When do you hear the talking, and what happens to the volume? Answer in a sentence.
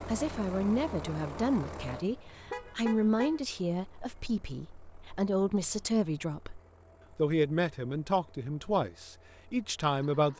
You can hear the talking from 0.1 to 10.3 s, at a steady volume.